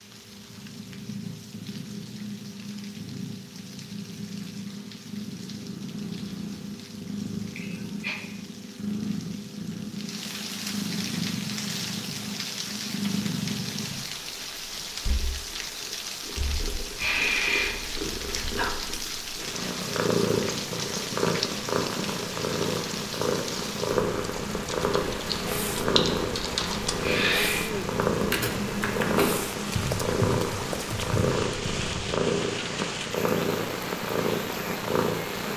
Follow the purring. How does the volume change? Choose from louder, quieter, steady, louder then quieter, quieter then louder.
louder.